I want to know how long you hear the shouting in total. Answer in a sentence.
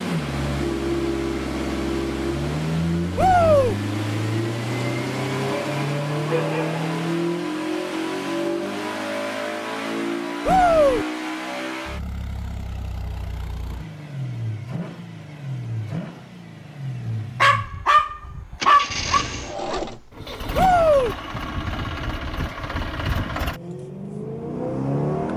The shouting can be heard for 2 seconds in total.